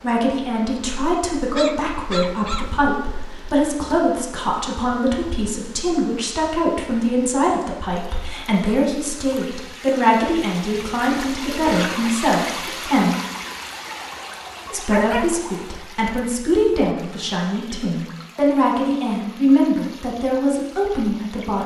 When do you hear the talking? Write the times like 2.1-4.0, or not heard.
0.0-13.2, 14.7-21.6.